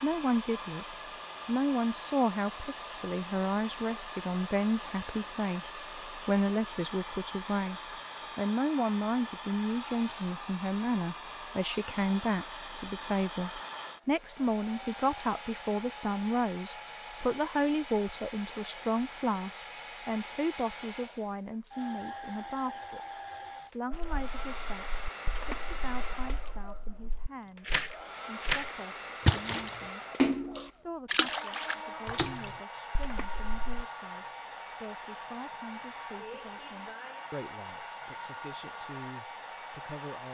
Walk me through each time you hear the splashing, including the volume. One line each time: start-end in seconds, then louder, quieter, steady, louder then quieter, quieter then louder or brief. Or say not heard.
23.9-33.9 louder then quieter.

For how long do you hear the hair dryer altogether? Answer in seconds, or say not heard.
40 s.